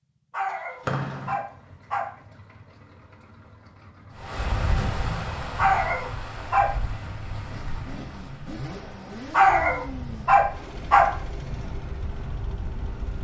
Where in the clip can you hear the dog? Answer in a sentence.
The dog can be heard from 0.3 to 2.1 s, from 5.5 to 6.8 s and from 9.3 to 11.2 s.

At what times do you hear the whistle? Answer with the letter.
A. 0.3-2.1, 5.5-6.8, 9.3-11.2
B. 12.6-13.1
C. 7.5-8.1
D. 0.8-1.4
D.